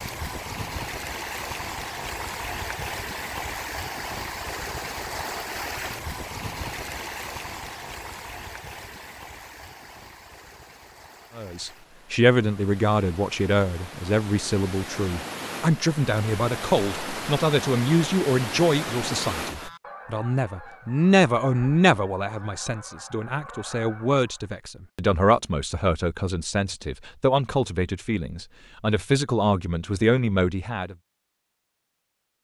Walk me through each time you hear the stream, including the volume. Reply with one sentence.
You can hear the stream from 0.0 to 19.7 s, getting quieter then louder.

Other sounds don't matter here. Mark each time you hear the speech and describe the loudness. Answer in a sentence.
The speech can be heard from 11.3 to 30.9 s, at a steady volume.